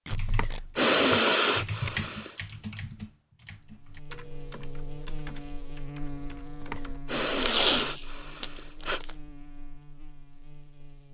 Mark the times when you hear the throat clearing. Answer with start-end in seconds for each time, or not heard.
0.2-2.4, 6.6-9.0.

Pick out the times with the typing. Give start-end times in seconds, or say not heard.
0.1-7.5.